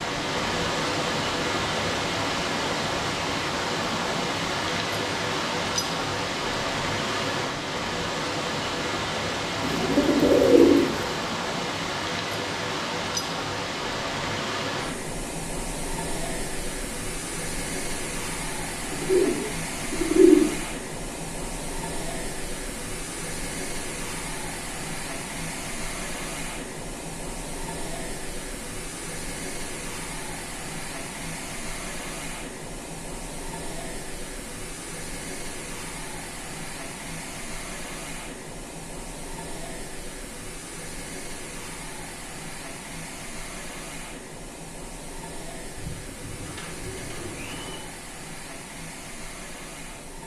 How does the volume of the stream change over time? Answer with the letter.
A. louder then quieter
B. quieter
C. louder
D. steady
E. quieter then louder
B.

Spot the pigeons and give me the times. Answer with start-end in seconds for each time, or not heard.
9.6-11.2, 18.9-20.5, 45.8-47.8.